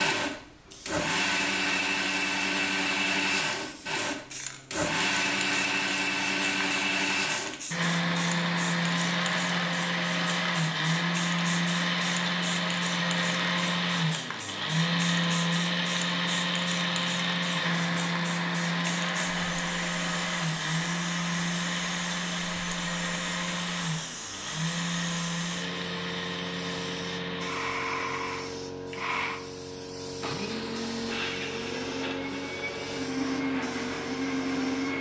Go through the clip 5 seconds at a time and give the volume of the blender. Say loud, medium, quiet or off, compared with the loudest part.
loud, loud, loud, loud, loud, medium, medium.